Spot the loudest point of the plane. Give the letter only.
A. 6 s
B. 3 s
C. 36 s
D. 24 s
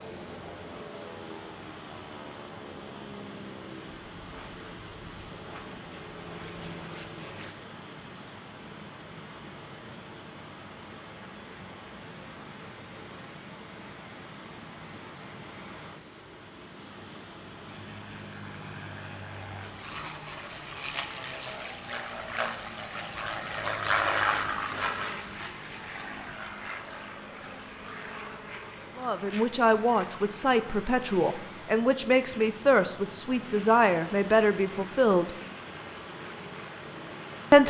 D.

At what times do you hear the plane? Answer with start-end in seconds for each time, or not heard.
0.0-7.5, 17.6-37.6.